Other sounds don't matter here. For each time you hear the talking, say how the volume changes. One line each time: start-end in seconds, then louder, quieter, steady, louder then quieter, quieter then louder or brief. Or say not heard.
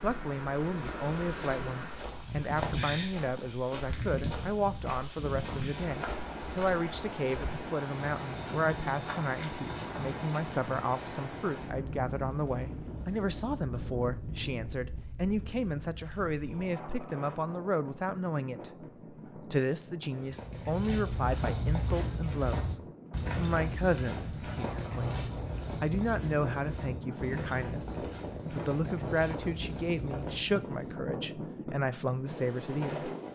0.0-33.1 steady.